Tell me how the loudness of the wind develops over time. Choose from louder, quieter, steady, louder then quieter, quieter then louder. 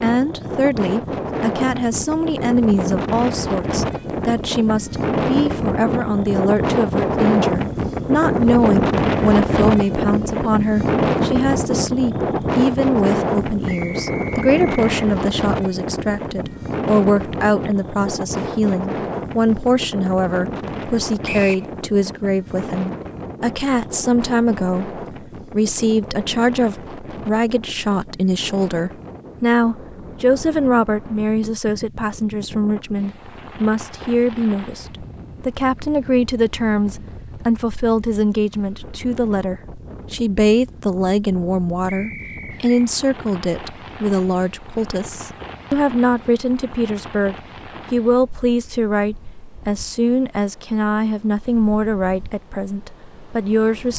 quieter.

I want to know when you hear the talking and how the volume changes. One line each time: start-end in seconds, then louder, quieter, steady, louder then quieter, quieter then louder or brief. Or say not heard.
0.0-53.9 steady.